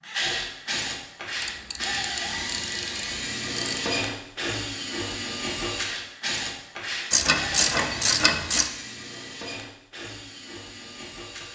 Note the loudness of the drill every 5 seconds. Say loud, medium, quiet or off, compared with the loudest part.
loud, loud, medium.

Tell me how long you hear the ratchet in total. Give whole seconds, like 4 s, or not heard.
4 s.